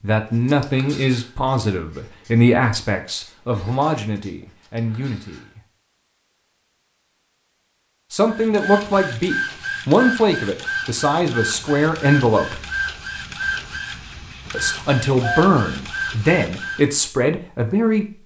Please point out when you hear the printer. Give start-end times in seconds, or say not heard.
8.3-16.9.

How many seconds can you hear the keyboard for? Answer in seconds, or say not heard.
not heard.